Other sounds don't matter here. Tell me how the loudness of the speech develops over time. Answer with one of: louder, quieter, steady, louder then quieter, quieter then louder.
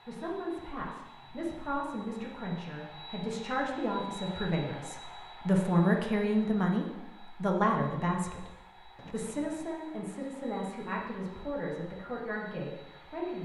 louder then quieter.